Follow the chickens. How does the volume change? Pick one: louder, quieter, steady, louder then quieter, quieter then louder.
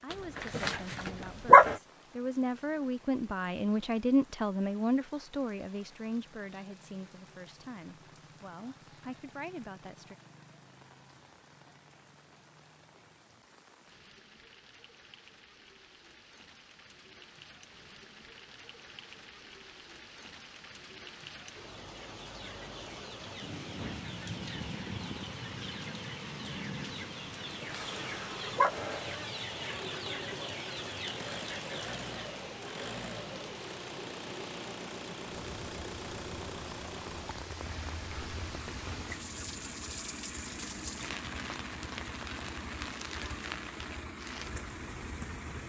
louder.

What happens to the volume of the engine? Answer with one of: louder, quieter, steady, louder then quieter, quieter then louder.
steady.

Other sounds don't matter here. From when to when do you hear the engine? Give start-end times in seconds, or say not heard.
27.8-45.6.